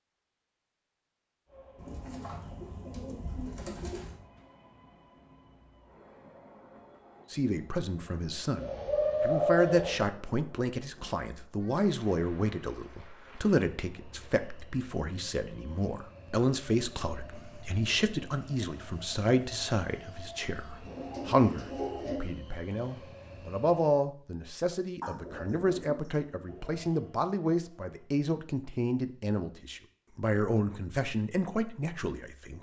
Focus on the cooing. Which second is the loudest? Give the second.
9 s.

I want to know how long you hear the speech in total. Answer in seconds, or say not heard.
25 s.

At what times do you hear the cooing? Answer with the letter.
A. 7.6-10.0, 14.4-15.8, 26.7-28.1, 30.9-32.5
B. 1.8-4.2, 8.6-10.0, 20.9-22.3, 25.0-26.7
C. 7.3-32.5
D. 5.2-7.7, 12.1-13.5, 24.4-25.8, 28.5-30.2
B.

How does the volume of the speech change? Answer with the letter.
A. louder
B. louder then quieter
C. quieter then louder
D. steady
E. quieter
D.